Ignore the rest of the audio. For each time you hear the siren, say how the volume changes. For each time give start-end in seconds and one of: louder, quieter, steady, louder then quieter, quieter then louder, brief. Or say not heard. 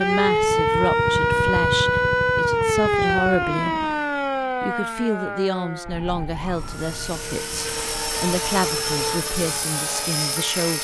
0.0-10.8 quieter.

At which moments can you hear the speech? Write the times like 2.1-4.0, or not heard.
0.0-3.8, 4.6-10.8.